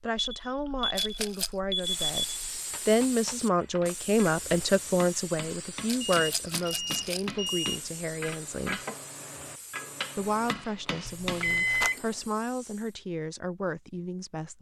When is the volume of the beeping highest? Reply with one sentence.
The volume of the beeping peaks at 12 seconds.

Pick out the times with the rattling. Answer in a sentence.
You can hear the rattling from 0.9 to 1.6 s, from 5.8 to 7.3 s and from 11.1 to 11.9 s.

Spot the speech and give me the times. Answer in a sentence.
You can hear the speech from 0.0 to 2.2 s, from 2.9 to 8.8 s and from 10.2 to 14.5 s.